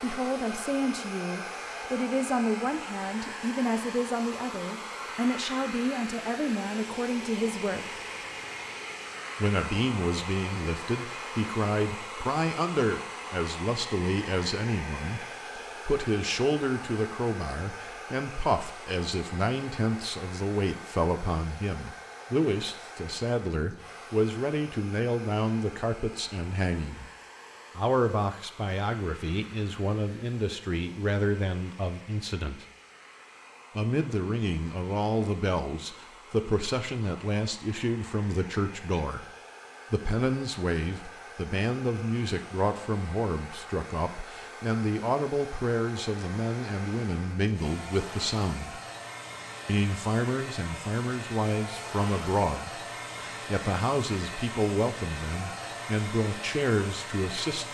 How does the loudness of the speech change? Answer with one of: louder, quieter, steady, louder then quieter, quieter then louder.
steady.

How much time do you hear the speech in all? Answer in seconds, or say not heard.
53 s.